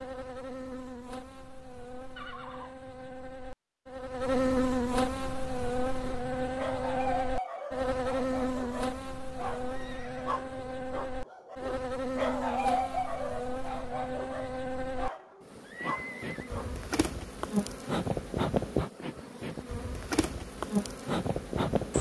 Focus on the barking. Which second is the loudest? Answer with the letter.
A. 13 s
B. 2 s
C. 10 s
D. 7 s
A.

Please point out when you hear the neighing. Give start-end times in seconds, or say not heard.
2.1-3.1, 9.7-10.4, 15.6-16.5.